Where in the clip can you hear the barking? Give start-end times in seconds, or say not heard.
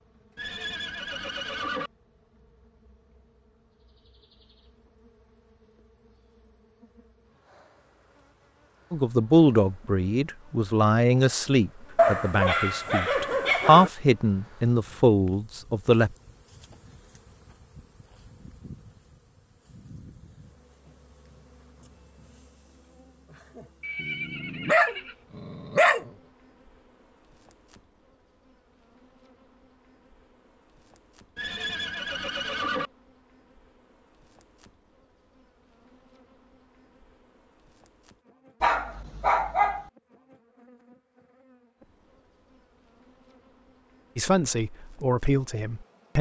11.9-13.9, 24.0-26.1, 38.6-39.9.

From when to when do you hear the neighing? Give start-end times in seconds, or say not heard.
0.3-1.9, 23.8-25.1, 31.4-32.9.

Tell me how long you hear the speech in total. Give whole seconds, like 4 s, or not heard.
9 s.